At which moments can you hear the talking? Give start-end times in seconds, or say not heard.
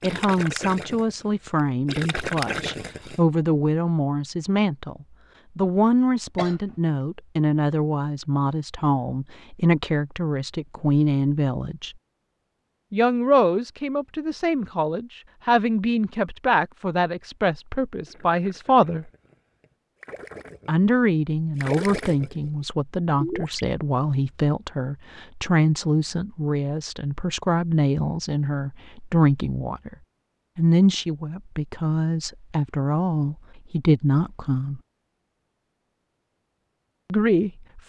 0.0-11.9, 12.9-19.1, 20.6-29.9, 30.6-34.8, 37.1-37.8.